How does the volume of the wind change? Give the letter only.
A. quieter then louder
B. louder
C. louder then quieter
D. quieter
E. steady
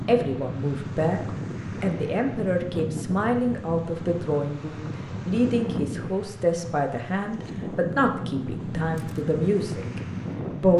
E.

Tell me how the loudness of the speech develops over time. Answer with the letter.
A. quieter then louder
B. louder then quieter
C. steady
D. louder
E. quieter
C.